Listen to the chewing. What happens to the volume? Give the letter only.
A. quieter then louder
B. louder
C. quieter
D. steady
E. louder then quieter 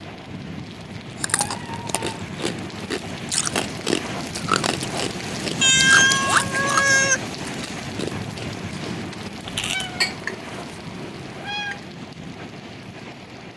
E.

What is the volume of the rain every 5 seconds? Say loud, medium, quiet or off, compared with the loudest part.
loud, loud, medium.